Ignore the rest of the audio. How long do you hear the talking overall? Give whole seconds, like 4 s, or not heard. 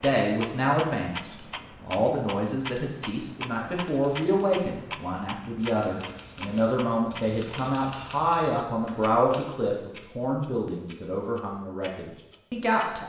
13 s.